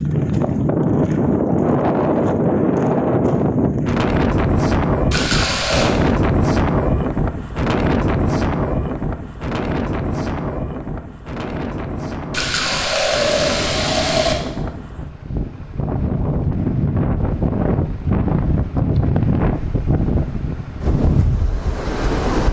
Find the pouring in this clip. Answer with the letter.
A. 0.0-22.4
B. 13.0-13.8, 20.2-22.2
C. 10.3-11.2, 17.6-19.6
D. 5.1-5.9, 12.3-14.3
D.